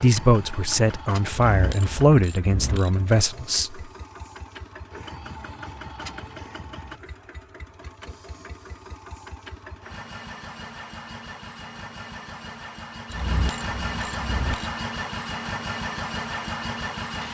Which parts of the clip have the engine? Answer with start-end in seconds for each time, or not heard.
0.0-17.2.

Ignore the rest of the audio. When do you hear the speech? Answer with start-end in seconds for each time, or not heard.
0.0-3.8.